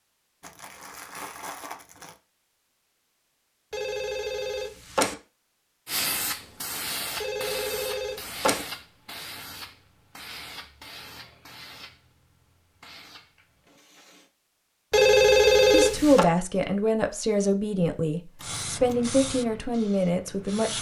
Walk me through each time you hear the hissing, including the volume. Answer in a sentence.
The hissing can be heard from 5.8 to 14.3 s, getting quieter; and briefly from 18.4 to 20.7 s.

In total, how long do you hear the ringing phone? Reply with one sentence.
You can hear the ringing phone for 4 seconds altogether.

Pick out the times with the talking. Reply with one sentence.
You can hear the talking from 15.7 to 20.7 s.